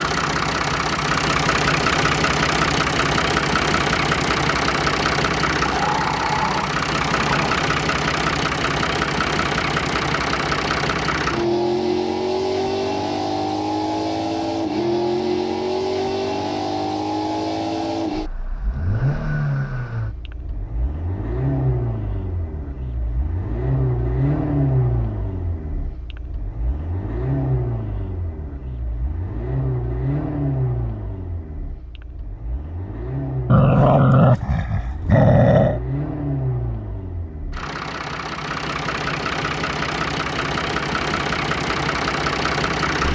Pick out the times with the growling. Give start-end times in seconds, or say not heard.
5.6-7.7, 33.5-35.8.